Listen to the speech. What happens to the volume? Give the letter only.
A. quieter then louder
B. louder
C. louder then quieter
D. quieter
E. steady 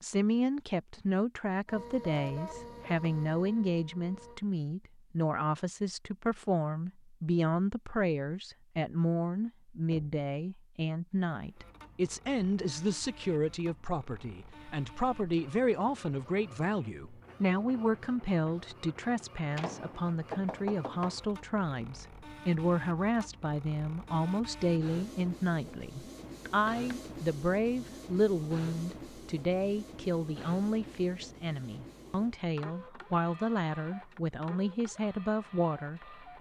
E.